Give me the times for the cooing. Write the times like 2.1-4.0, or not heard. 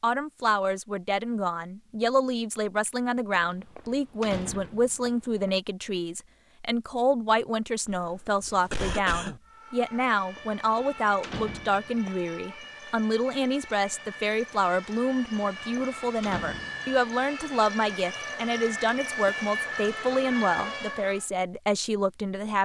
not heard.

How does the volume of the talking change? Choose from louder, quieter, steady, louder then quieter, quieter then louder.
steady.